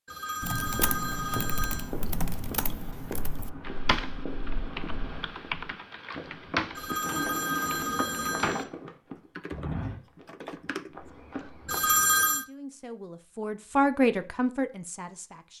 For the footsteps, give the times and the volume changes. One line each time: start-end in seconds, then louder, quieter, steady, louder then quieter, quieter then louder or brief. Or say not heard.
0.6-12.0 steady.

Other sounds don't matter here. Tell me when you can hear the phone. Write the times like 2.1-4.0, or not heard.
0.1-1.9, 6.8-8.7, 11.7-12.4.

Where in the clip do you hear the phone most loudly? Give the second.
12 s.